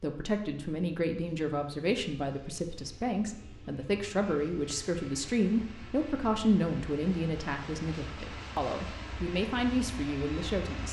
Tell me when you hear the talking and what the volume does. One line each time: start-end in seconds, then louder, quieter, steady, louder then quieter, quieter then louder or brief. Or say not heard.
0.0-10.8 steady.